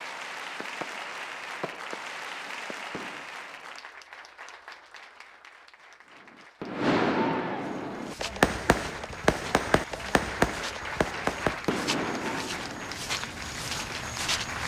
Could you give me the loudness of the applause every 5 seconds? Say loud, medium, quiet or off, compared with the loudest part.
loud, medium, loud.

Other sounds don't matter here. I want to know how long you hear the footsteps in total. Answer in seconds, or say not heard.
7 s.